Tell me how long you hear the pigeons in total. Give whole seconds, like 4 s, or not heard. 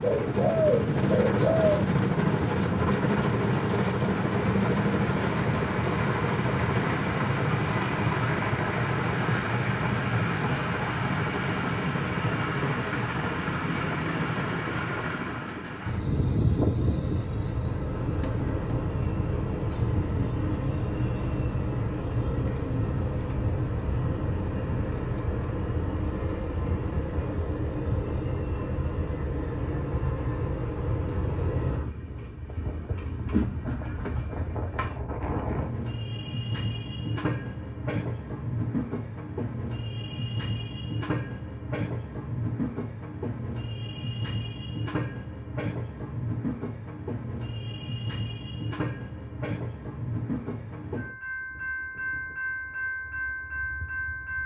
2 s.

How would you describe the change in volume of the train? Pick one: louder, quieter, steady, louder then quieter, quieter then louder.
quieter.